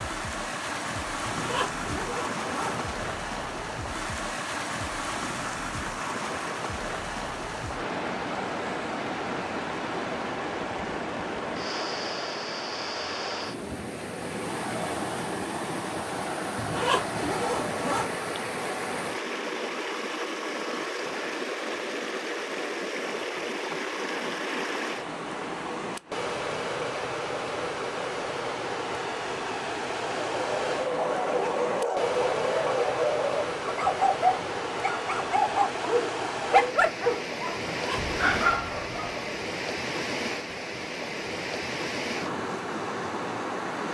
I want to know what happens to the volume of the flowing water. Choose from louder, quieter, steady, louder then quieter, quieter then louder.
steady.